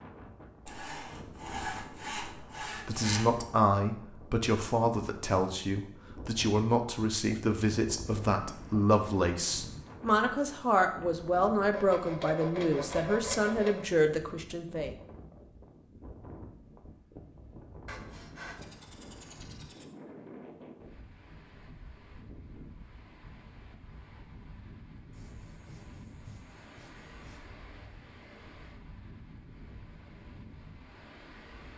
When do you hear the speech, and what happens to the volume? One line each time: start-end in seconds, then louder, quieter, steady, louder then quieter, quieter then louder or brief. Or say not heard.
2.9-14.9 steady.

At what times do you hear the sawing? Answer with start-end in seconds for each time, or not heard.
0.7-3.5, 11.7-13.8, 17.9-19.9, 25.1-27.5.